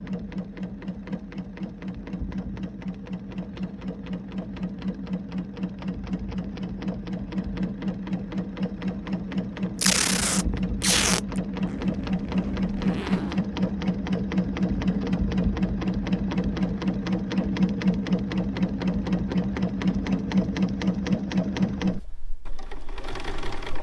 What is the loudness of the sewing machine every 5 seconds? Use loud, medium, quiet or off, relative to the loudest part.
medium, medium, loud, loud, loud.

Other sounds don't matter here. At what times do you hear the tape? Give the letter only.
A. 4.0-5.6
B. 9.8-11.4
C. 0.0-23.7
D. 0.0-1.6
B.